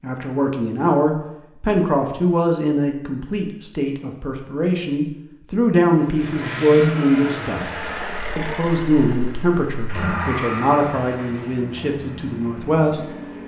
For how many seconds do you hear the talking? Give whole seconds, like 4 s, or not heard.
13 s.